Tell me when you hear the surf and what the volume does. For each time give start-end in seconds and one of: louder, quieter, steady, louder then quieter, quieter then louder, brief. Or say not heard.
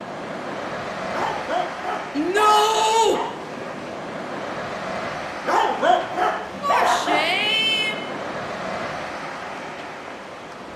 0.0-10.7 steady.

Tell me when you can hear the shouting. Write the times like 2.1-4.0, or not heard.
2.1-3.2, 6.6-8.0.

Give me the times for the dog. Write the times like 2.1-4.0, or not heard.
1.1-3.8, 5.5-7.3.